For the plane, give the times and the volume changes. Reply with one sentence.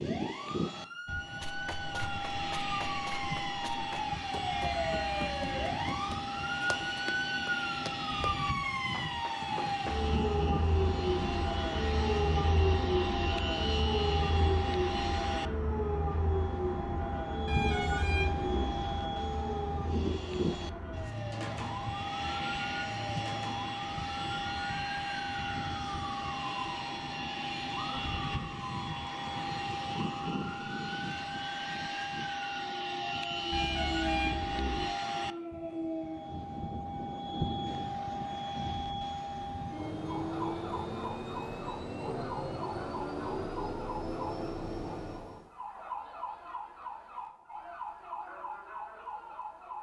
You can hear the plane from 0.0 to 45.5 s, at a steady volume.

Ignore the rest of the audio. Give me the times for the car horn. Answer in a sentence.
The car horn can be heard from 4.5 to 5.7 s, from 17.4 to 18.8 s and from 33.5 to 34.9 s.